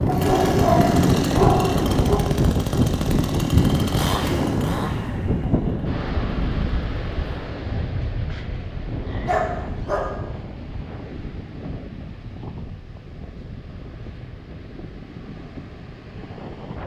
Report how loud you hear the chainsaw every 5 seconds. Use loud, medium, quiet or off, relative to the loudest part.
loud, quiet, off, off.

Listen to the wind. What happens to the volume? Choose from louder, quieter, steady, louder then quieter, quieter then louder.
quieter.